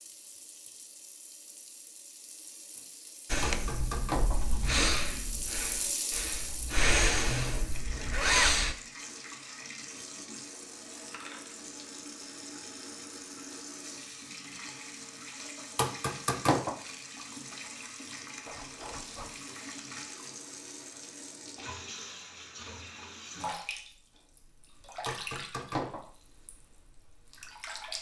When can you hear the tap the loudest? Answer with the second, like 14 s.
6 s.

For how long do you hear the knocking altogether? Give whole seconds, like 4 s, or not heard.
3 s.